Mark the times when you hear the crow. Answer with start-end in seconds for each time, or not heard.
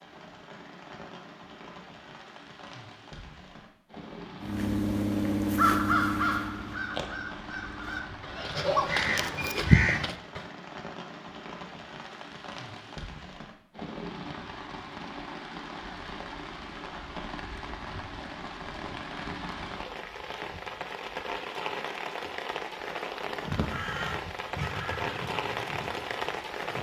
4.4-10.4, 23.4-26.7.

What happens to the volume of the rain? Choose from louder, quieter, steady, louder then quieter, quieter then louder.
louder.